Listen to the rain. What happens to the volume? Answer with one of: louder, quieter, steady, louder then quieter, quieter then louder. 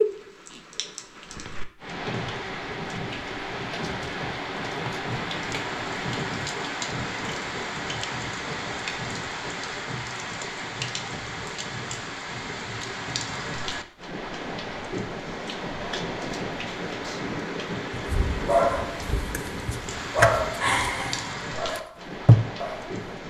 steady.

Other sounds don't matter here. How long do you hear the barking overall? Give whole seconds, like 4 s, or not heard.
5 s.